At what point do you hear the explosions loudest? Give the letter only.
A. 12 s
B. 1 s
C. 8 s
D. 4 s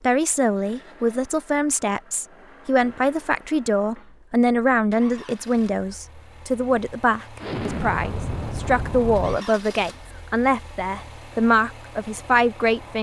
C.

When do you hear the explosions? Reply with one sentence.
You can hear the explosions from 7.4 to 9.4 s.